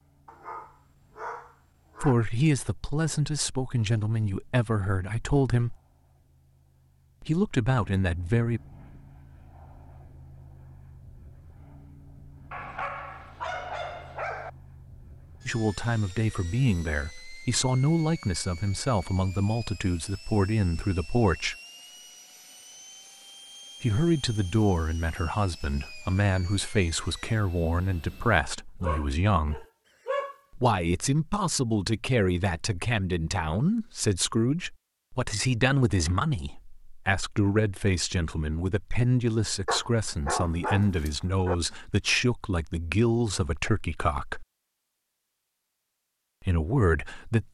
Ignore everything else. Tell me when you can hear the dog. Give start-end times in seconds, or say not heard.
0.2-2.1, 12.5-14.5, 28.8-30.4, 39.6-41.5.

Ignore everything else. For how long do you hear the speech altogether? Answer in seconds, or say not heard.
32 s.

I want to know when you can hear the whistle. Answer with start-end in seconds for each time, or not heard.
not heard.